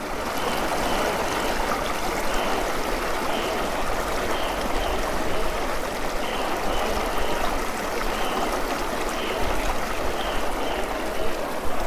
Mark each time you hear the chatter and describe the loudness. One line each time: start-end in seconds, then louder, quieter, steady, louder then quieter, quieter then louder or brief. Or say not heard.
0.0-11.8 steady.